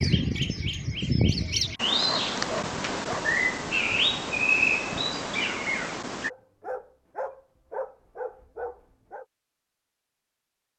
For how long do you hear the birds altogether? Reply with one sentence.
You can hear the birds for 6 seconds altogether.